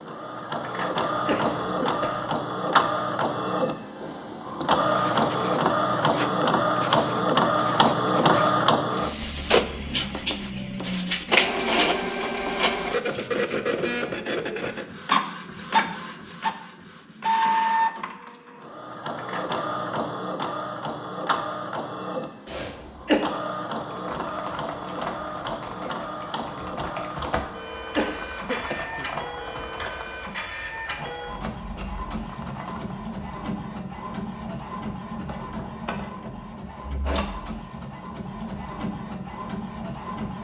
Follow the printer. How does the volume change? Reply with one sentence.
The loudness of the printer goes down.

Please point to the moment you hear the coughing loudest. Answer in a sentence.
The loudest moment of the coughing is at 23 seconds.